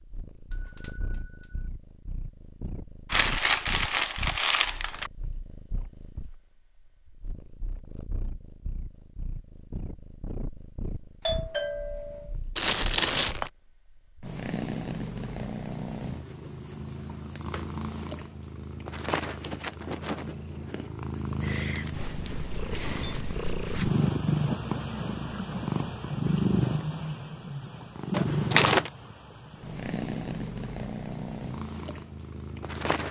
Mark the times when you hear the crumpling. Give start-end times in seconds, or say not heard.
3.1-5.1, 12.6-13.5, 28.1-28.9.